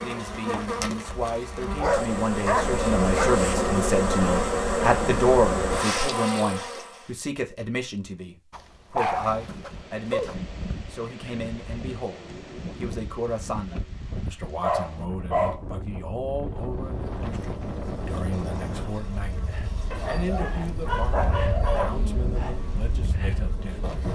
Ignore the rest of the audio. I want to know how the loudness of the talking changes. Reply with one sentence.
The volume of the talking goes down.